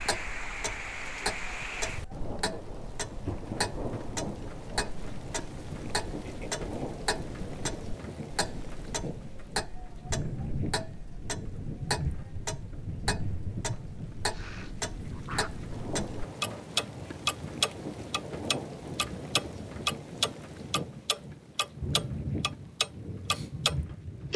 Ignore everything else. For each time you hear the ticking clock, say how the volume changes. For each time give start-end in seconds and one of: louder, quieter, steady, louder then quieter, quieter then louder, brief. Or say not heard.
0.0-24.3 louder.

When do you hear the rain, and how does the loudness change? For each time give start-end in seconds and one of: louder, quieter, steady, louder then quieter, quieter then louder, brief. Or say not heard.
0.0-24.3 steady.